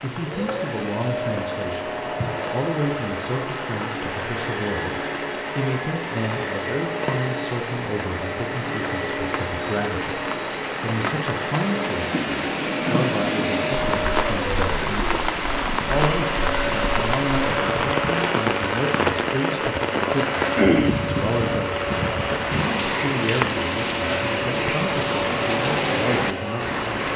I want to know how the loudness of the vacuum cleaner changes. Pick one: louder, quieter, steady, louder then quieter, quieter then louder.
steady.